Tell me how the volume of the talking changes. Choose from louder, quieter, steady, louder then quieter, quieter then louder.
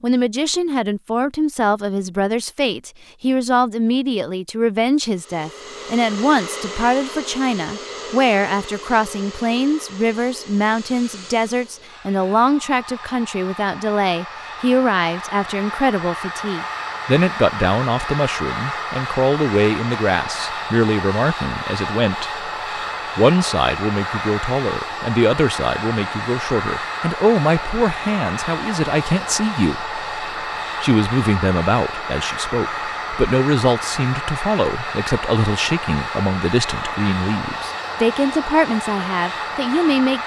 steady.